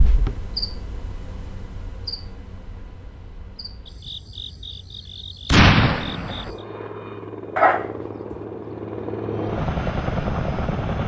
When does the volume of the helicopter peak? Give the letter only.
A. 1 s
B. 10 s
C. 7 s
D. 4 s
B.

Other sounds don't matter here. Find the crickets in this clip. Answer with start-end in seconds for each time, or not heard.
0.0-6.7.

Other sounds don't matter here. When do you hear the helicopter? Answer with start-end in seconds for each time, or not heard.
6.5-11.0.